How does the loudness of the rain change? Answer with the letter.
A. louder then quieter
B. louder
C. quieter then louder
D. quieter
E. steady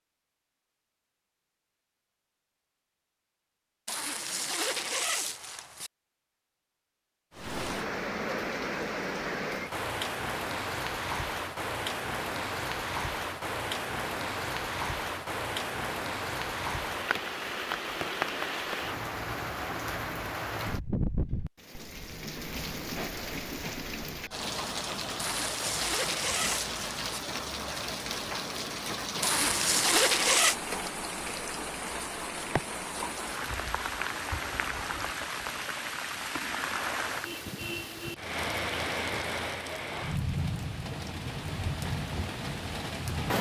E.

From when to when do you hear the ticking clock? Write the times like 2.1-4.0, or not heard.
not heard.